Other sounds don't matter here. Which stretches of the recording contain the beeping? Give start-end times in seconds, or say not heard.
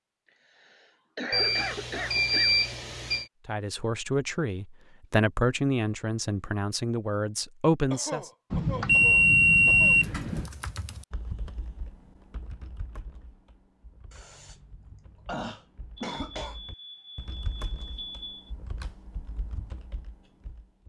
1.3-3.2, 8.5-10.5, 15.9-18.5.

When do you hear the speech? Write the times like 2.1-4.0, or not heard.
3.5-8.3.